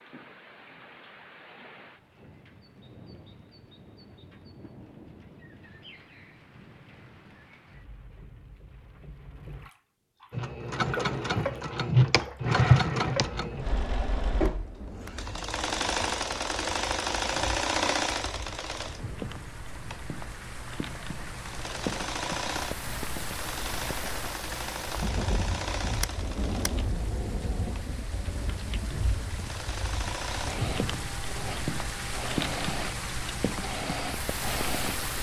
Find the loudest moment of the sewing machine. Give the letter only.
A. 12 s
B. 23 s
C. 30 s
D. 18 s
A.